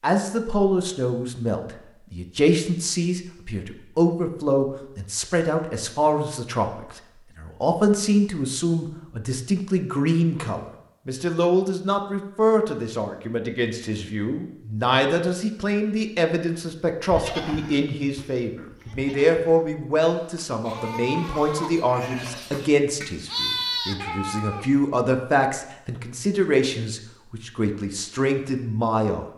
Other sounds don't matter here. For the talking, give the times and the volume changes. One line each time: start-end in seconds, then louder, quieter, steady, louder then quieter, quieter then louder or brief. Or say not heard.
0.0-29.2 steady.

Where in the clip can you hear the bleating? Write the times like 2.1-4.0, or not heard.
17.1-24.6.